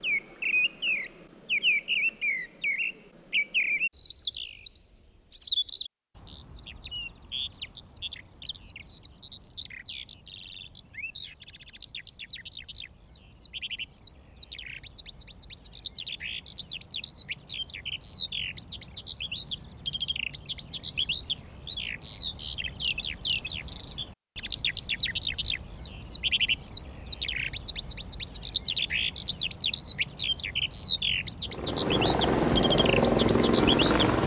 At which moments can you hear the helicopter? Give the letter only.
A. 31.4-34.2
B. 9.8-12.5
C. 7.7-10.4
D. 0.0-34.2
A.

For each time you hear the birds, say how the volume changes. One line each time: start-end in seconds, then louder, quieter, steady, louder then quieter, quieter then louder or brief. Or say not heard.
0.0-34.2 quieter then louder.